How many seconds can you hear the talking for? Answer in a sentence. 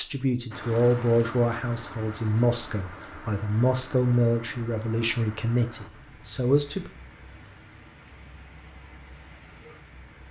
You can hear the talking for 7 seconds altogether.